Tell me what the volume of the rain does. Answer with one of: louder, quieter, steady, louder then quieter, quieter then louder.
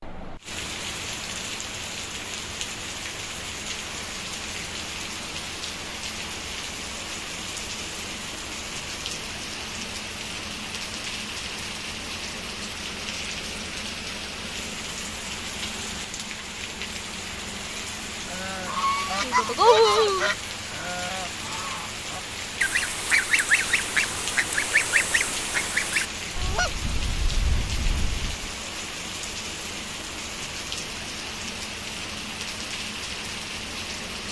steady.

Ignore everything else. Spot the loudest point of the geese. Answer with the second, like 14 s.
20 s.